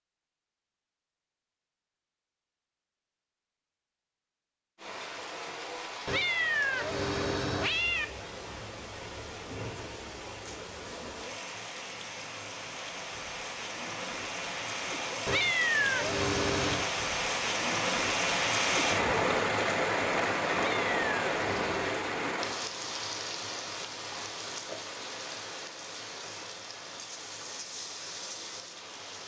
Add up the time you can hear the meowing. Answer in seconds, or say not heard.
5 s.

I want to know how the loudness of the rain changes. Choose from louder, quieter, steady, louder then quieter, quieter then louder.
louder then quieter.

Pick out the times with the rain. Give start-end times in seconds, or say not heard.
4.8-29.2.